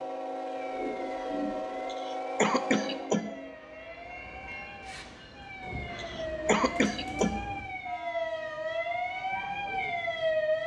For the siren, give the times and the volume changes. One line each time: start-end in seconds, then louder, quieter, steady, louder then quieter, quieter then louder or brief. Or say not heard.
0.0-10.6 louder.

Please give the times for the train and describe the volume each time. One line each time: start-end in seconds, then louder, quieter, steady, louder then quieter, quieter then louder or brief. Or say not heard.
0.0-10.6 quieter.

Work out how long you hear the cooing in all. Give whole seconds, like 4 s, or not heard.
3 s.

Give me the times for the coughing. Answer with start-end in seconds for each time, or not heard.
1.9-3.3, 6.0-7.4.